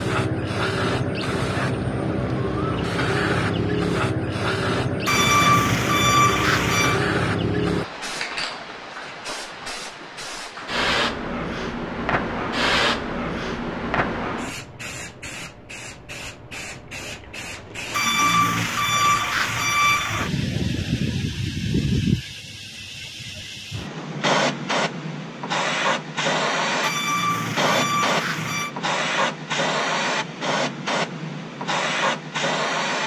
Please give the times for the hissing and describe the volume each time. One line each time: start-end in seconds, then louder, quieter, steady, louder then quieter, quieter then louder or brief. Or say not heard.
0.0-33.0 quieter then louder.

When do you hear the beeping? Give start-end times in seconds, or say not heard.
5.0-7.0, 17.9-20.3, 26.8-28.7.